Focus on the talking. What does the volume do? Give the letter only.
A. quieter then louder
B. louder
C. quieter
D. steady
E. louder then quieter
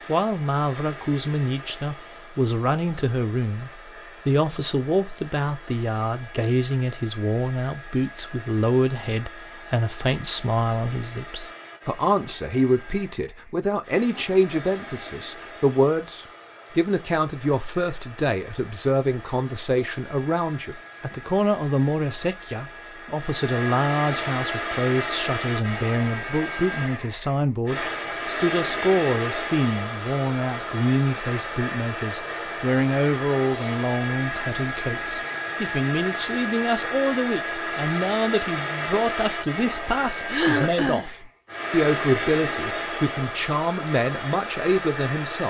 D.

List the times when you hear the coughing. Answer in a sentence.
The coughing can be heard from 40.2 to 41.1 s.